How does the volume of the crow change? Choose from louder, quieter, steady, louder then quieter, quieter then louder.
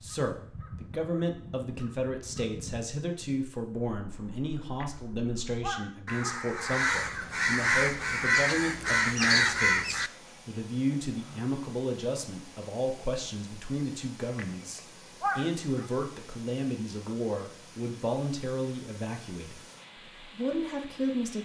quieter then louder.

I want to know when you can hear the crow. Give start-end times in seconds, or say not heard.
0.0-10.1.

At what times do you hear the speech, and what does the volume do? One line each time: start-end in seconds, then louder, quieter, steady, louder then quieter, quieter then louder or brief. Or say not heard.
0.0-19.6 steady
20.2-21.3 brief.